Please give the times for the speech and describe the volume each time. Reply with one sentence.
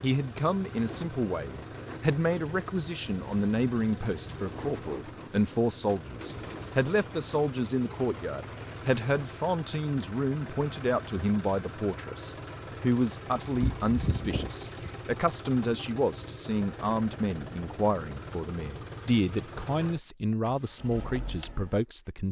You can hear the speech from 0.0 to 22.2 s, at a steady volume.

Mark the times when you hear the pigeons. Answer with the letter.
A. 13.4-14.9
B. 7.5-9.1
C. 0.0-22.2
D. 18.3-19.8
A.